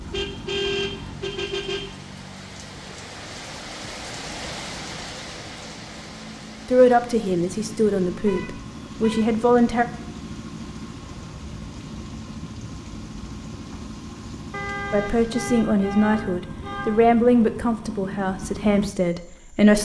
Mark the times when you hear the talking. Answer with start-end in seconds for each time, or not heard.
6.7-9.8, 14.9-19.8.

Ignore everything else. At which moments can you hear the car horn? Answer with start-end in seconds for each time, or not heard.
0.1-1.9, 8.2-9.3, 14.5-17.1.